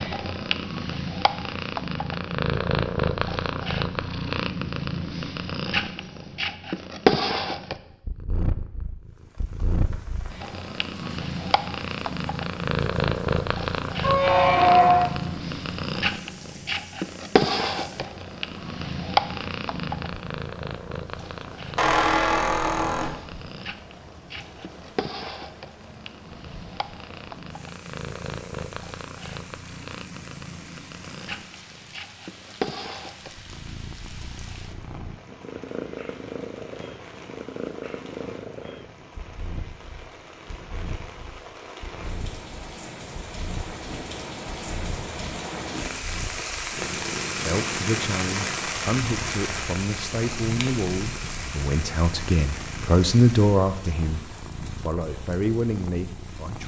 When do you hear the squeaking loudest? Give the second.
15 s.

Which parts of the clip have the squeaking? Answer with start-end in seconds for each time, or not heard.
14.0-15.1, 21.8-23.1, 50.4-51.5.